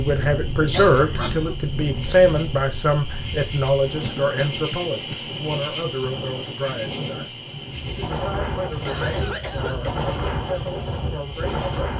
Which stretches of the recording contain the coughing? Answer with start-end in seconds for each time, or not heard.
0.7-1.6, 4.0-5.2, 8.8-9.9.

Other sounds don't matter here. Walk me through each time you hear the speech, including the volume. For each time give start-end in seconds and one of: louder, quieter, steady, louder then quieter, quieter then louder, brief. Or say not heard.
0.0-11.7 quieter.